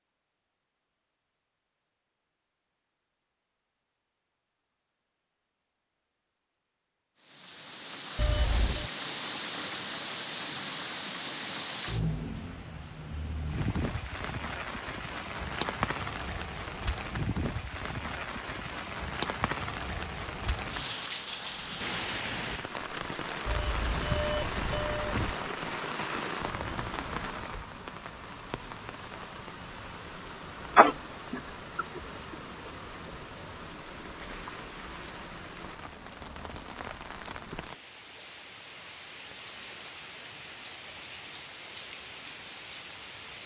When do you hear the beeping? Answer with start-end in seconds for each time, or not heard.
8.2-8.9, 23.4-25.4.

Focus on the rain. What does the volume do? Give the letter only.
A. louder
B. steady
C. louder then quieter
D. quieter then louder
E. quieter
E.